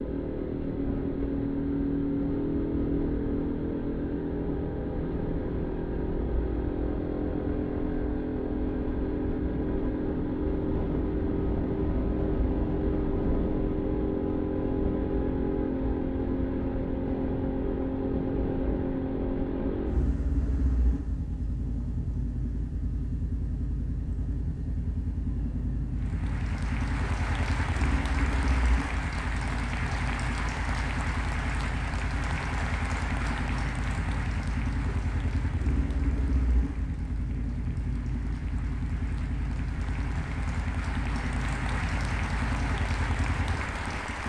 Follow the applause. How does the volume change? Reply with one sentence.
The loudness of the applause goes down, then up.